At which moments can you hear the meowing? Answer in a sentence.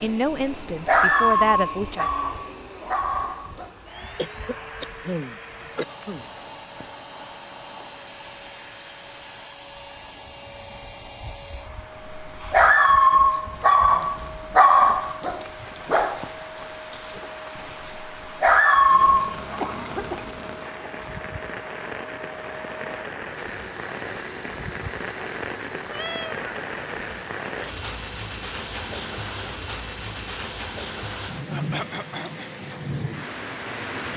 The meowing can be heard from 25.9 to 26.5 s.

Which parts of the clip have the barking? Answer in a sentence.
The barking can be heard from 0.0 to 3.7 s and from 12.1 to 19.4 s.